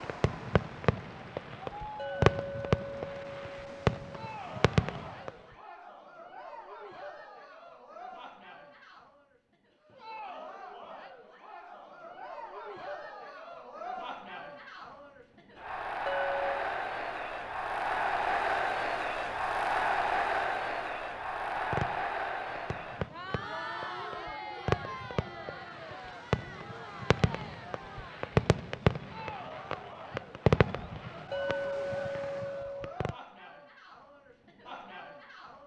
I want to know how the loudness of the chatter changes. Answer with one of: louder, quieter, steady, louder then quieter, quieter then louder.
louder then quieter.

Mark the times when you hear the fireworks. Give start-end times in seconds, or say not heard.
0.0-5.3, 21.6-33.1.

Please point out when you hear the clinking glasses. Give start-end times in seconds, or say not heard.
1.9-4.2, 16.1-16.6, 31.3-33.0.